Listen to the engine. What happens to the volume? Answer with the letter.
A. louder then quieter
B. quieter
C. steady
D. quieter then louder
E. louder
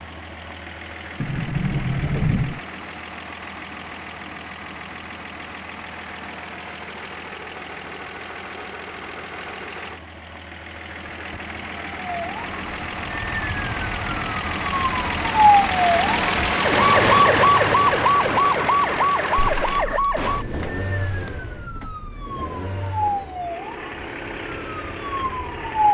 A.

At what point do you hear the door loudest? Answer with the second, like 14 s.
2 s.